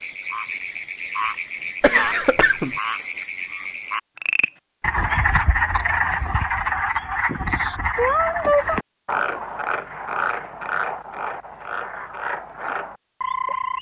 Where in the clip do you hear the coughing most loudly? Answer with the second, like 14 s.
2 s.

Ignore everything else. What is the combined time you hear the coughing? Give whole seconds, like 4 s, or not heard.
2 s.